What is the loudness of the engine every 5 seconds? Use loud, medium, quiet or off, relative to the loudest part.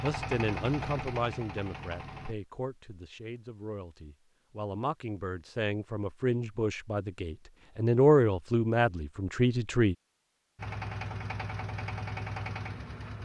loud, off, loud.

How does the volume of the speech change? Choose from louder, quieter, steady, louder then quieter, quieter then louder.
quieter then louder.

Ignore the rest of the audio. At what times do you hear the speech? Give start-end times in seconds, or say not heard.
0.0-9.9.